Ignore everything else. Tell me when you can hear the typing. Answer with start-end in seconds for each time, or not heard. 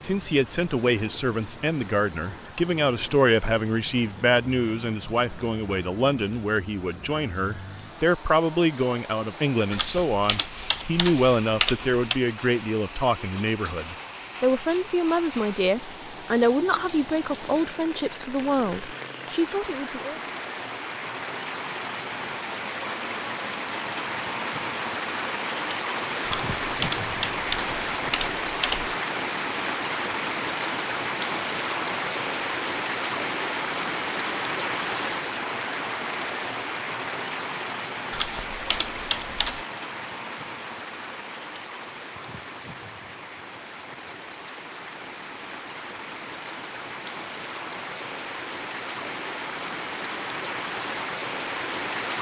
9.7-12.2, 26.2-28.9, 38.1-39.6.